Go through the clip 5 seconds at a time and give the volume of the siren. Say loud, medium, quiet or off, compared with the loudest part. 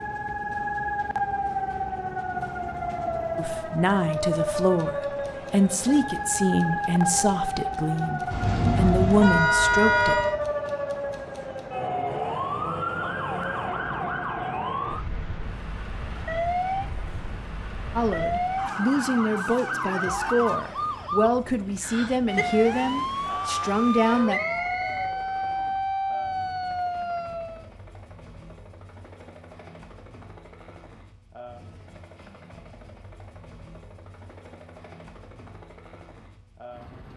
loud, loud, loud, loud, loud, loud, off, off.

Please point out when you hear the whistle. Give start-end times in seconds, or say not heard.
24.2-25.1.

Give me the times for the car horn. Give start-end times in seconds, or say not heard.
8.3-10.3.